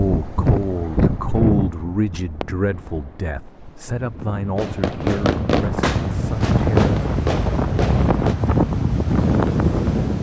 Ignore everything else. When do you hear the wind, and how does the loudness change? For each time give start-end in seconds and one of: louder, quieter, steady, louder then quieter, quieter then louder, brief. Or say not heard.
0.0-10.1 quieter then louder.